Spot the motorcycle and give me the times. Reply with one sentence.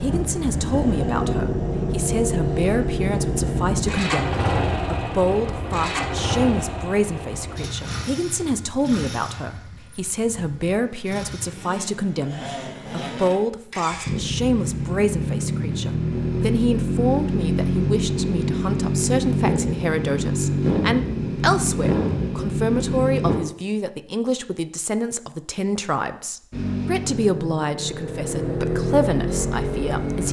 You can hear the motorcycle from 0.0 to 23.4 s and from 26.5 to 30.2 s.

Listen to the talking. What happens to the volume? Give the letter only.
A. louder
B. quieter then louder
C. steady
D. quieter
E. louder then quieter
C.